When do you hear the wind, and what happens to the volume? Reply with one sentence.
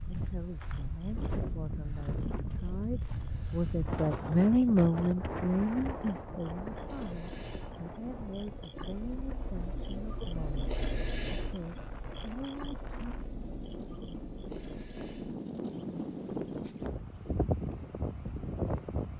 You can hear the wind from 0.0 to 19.1 s, getting quieter then louder.